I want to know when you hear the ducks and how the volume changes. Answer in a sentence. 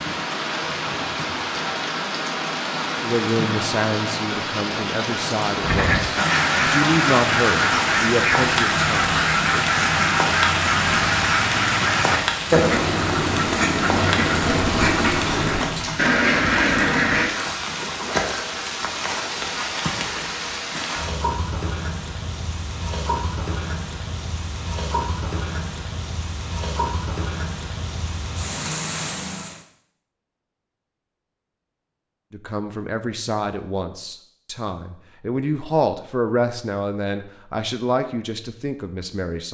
You can hear the ducks from 5.6 to 17.3 s, at a steady volume.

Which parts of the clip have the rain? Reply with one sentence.
You can hear the rain from 0.0 to 29.6 s.